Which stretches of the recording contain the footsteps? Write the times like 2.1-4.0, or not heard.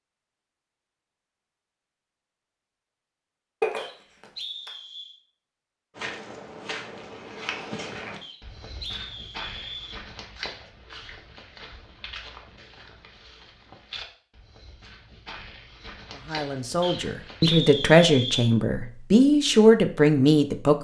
6.0-17.6.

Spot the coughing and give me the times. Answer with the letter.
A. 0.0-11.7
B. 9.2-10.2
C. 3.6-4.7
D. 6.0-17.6
C.